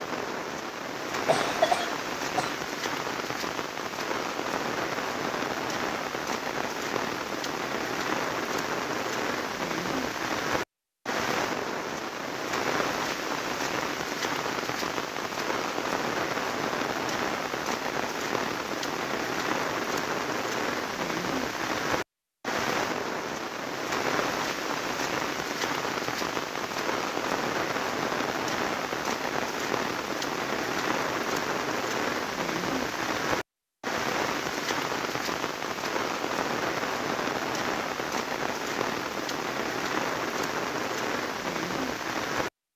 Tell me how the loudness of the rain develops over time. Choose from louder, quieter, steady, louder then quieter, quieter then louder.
steady.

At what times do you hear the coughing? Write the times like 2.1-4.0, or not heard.
1.2-2.6.